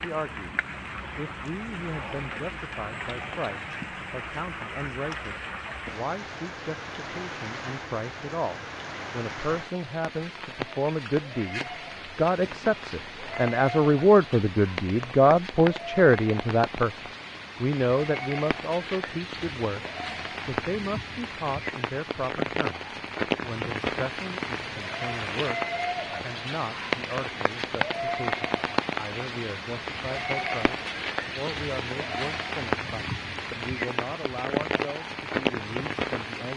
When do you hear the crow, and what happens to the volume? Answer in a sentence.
You can't hear the crow here.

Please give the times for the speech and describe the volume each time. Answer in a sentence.
You can hear the speech from 0.0 to 36.5 s, getting louder then quieter.